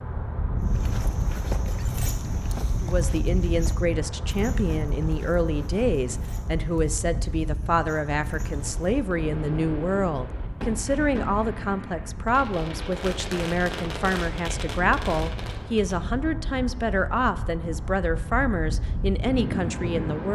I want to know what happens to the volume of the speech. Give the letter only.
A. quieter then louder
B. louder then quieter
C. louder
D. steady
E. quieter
D.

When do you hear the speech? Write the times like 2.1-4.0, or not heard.
2.8-20.2.